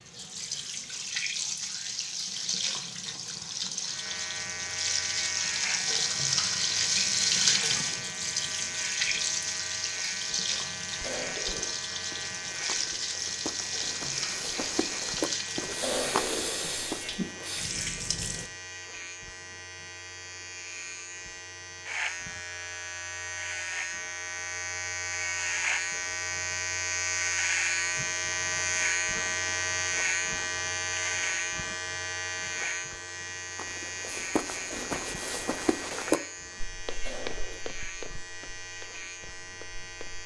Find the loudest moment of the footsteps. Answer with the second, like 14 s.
36 s.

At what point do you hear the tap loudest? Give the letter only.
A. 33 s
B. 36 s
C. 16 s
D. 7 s
D.